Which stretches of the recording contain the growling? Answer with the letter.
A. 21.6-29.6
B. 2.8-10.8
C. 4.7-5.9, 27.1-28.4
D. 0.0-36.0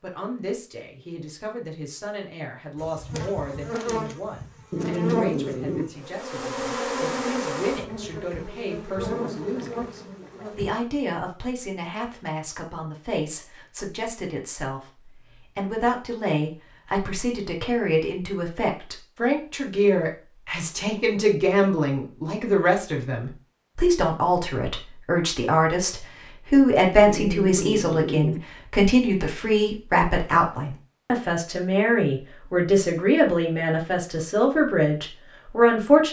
C.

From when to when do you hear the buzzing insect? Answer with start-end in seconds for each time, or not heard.
2.8-10.8.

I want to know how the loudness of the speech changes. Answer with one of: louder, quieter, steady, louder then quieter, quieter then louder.
louder.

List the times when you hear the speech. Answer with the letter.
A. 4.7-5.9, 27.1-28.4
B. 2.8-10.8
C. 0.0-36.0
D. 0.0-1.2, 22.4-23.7
C.